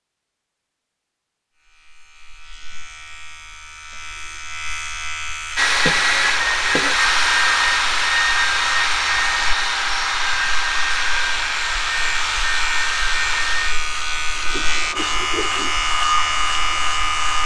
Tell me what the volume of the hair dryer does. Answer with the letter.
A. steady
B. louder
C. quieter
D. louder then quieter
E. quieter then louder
C.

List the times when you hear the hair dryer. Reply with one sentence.
The hair dryer can be heard from 5.5 to 17.4 s.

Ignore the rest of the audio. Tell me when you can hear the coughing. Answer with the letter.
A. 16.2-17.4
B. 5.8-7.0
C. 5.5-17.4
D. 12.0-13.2
B.